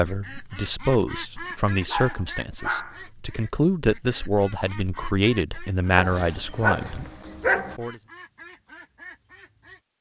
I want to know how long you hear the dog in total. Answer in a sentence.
You can hear the dog for 3 seconds altogether.